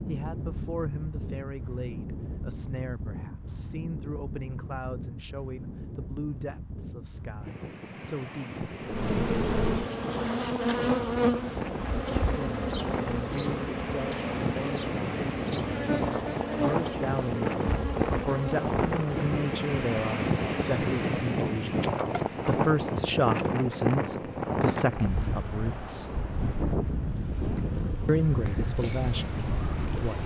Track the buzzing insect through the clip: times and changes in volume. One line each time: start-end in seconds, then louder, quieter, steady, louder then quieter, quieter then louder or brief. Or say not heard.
8.8-25.1 quieter
27.6-30.2 brief.